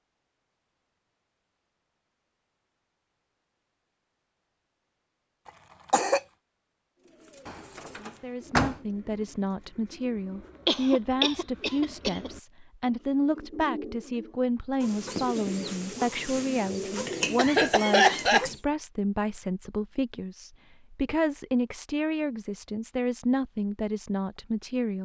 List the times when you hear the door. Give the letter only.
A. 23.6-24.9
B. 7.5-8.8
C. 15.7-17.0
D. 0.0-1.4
B.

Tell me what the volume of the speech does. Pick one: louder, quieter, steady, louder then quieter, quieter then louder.
steady.